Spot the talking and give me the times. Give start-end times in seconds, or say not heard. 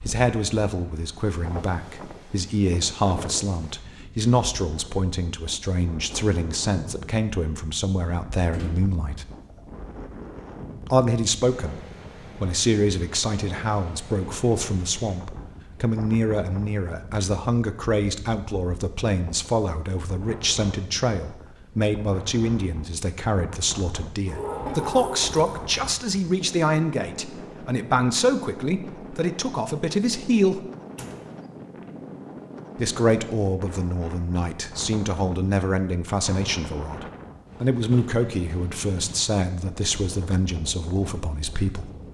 0.1-9.2, 10.8-30.6, 32.8-41.9.